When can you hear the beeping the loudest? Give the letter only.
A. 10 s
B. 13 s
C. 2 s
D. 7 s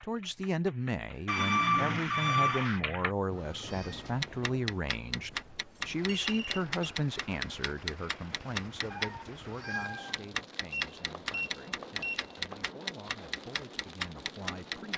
C.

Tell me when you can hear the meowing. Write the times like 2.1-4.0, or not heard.
3.6-4.2, 8.9-10.8.